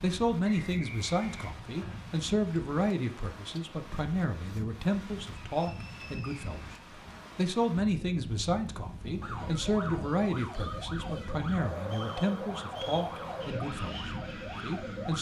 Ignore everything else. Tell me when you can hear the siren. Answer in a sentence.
You can hear the siren from 9.2 to 15.1 s.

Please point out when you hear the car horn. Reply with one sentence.
You can't hear the car horn here.